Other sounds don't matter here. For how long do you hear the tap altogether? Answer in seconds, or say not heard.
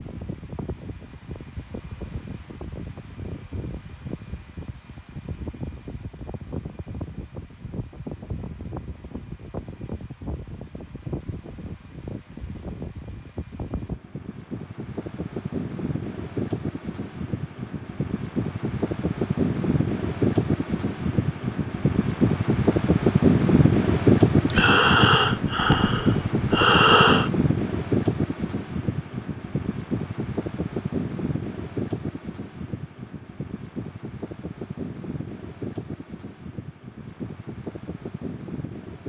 not heard.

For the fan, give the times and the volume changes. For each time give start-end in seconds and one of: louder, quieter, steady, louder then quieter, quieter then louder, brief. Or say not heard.
0.0-39.0 louder then quieter.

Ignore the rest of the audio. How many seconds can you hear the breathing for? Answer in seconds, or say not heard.
3 s.